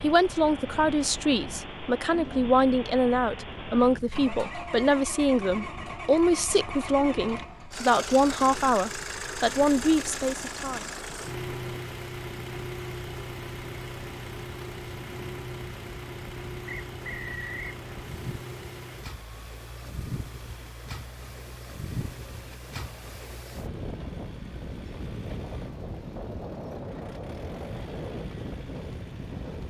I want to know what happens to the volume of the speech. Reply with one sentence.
The loudness of the speech stays about the same.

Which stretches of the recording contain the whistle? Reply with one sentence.
The whistle can be heard from 16.6 to 17.8 s.